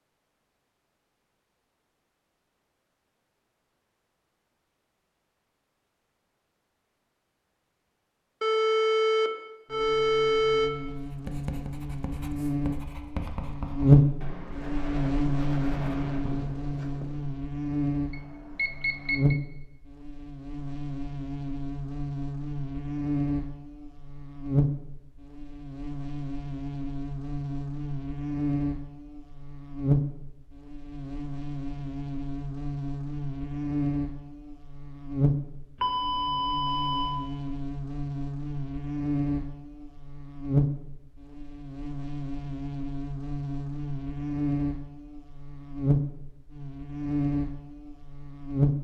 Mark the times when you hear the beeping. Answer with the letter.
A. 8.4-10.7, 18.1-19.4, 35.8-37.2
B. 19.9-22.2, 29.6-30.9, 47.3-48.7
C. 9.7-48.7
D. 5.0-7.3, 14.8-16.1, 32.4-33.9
A.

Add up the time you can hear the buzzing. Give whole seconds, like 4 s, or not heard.
39 s.